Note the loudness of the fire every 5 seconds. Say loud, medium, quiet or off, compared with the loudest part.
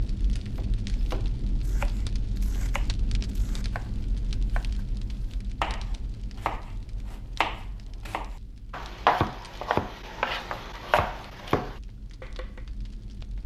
loud, medium, medium.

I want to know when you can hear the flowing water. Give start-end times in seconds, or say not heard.
not heard.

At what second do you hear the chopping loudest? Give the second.
9 s.